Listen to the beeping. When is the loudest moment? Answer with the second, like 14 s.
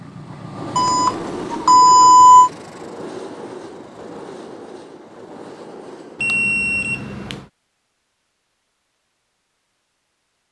2 s.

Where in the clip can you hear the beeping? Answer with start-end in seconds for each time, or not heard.
0.8-2.5, 6.2-7.5.